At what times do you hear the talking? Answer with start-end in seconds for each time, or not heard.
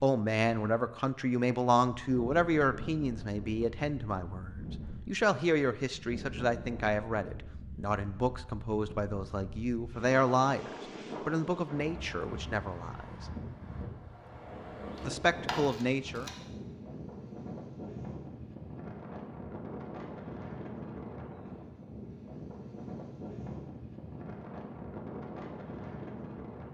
0.0-13.2, 15.1-16.3.